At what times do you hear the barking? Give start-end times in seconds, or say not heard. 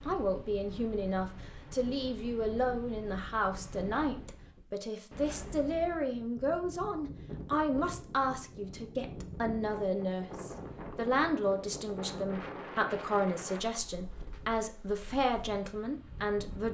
not heard.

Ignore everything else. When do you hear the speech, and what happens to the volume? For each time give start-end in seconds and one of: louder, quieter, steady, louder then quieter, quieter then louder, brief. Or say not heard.
0.1-16.6 steady.